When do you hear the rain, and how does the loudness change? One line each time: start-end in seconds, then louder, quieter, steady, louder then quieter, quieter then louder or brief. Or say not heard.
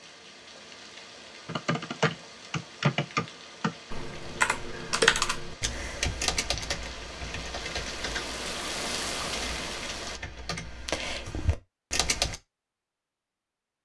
0.0-10.2 louder.